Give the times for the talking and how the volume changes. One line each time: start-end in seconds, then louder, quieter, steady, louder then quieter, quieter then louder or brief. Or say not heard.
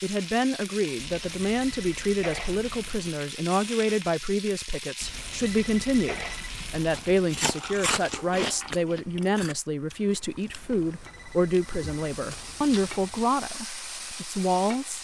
0.0-14.9 steady.